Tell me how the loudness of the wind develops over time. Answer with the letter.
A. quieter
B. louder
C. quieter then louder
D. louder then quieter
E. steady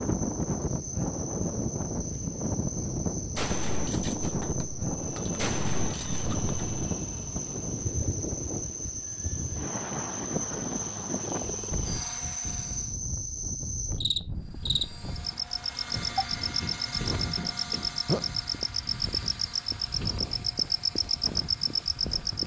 A.